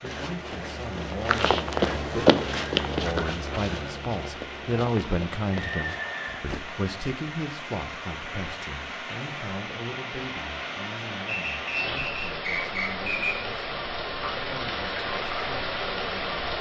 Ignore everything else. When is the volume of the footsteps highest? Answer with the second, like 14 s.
2 s.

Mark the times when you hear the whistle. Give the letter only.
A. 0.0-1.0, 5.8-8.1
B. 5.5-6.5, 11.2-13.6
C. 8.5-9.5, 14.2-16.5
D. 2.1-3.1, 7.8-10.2
B.